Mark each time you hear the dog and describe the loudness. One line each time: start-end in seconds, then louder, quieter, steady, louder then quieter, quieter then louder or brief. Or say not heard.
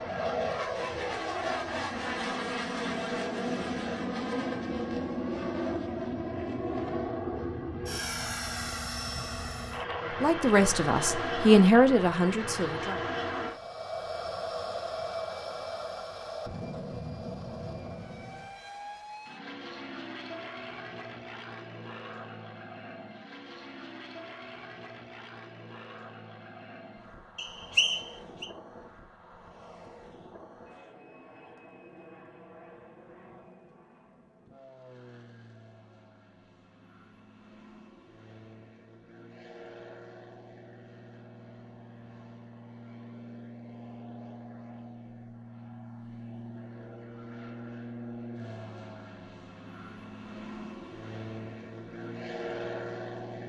not heard.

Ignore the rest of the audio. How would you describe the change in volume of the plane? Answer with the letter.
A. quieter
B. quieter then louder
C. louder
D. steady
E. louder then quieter
B.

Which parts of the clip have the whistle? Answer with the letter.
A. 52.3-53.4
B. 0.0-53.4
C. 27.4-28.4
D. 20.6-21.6
C.